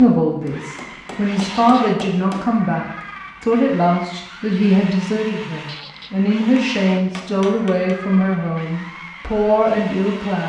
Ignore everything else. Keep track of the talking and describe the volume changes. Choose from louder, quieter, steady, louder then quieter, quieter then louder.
steady.